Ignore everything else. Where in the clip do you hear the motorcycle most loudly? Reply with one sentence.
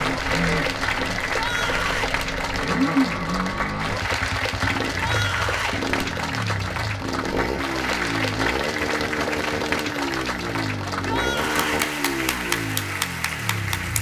The volume of the motorcycle peaks at 3 seconds.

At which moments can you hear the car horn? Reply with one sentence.
You can't hear the car horn here.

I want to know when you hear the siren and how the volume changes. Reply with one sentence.
The siren can't be heard in this clip.